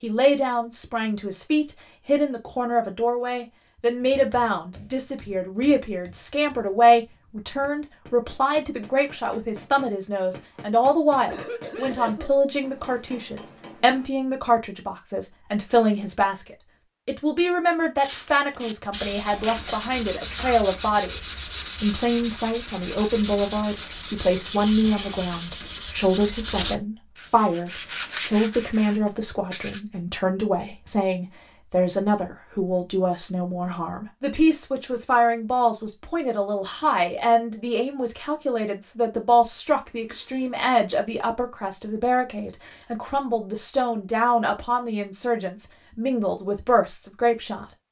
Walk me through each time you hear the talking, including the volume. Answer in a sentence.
The talking can be heard from 0.0 to 47.6 s, at a steady volume.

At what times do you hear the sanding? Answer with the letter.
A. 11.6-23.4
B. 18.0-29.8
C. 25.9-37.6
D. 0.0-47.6
B.